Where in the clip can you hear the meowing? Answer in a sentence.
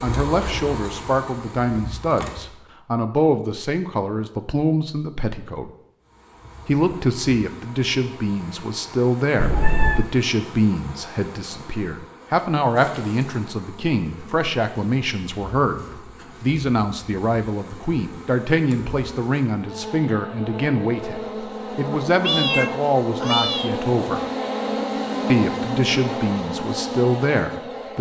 You can hear the meowing from 9.4 to 10.1 s and from 22.2 to 23.7 s.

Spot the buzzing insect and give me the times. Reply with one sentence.
The buzzing insect can be heard from 0.0 to 2.6 s and from 6.0 to 27.9 s.